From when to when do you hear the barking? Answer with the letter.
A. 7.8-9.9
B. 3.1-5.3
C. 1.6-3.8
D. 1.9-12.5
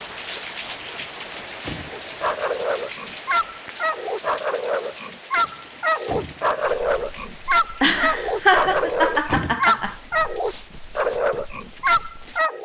D.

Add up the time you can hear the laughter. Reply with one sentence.
The laughter can be heard for 2 seconds in total.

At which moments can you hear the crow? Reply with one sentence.
You can't hear the crow here.